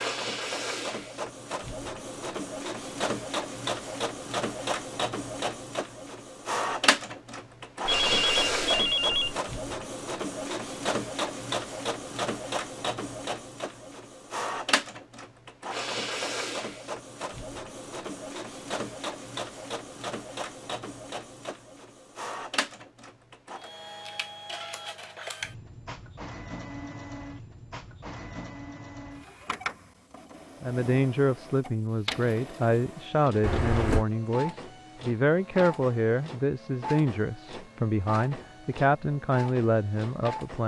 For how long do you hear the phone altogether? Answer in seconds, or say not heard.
2 s.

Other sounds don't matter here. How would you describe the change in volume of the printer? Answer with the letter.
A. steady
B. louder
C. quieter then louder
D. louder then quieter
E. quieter
E.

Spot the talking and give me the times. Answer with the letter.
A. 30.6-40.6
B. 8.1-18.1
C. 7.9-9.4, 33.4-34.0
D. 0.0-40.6
A.